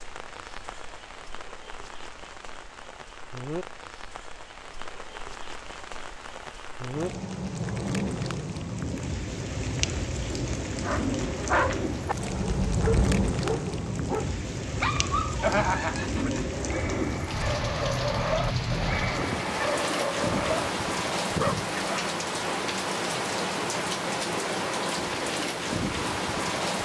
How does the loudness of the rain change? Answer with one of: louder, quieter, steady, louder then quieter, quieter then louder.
louder.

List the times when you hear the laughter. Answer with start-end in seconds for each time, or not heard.
15.4-16.4.